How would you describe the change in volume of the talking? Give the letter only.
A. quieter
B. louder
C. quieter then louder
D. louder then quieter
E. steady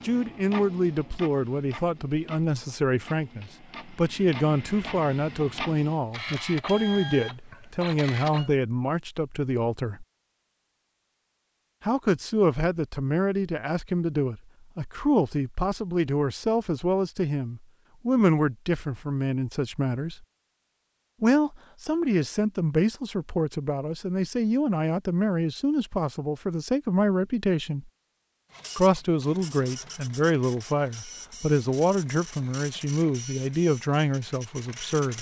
E.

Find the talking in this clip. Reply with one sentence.
You can hear the talking from 0.0 to 10.1 s, from 11.8 to 20.2 s, from 21.2 to 27.9 s and from 28.8 to 35.1 s.